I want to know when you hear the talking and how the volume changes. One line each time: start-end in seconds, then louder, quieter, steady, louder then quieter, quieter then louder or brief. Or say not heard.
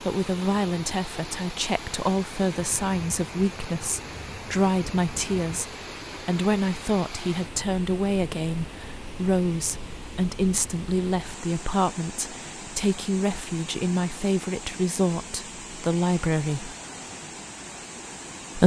0.1-16.8 steady.